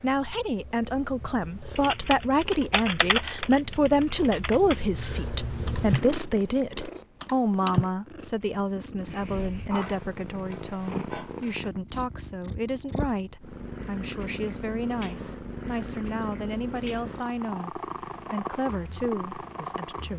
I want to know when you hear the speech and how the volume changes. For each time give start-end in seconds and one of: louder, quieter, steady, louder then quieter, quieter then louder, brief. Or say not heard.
0.0-20.1 quieter.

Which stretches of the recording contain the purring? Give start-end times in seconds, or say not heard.
0.0-20.1.